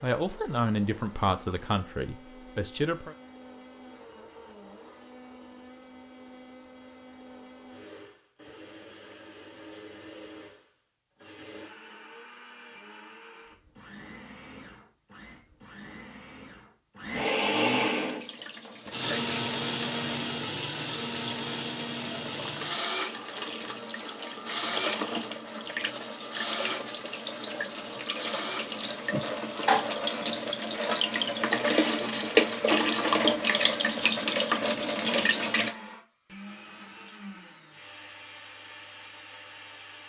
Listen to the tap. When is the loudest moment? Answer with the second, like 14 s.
33 s.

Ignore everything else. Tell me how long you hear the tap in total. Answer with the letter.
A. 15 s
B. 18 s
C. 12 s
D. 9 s
B.